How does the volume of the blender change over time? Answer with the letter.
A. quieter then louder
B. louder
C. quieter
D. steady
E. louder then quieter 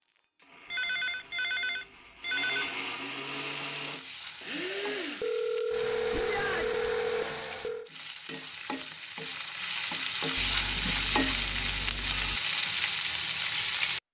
B.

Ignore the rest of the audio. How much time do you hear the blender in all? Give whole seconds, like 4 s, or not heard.
8 s.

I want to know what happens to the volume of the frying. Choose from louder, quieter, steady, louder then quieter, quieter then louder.
louder.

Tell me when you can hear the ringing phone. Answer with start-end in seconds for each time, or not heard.
0.7-2.8, 5.2-7.9, 10.3-12.4.